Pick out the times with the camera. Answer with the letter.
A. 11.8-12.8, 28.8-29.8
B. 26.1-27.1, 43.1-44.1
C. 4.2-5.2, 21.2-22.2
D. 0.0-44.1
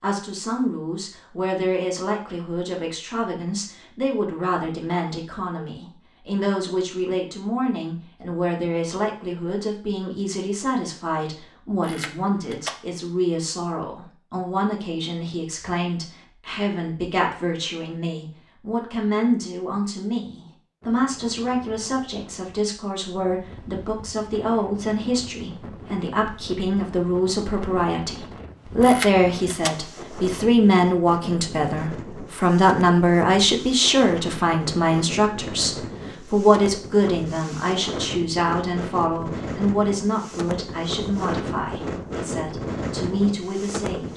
A.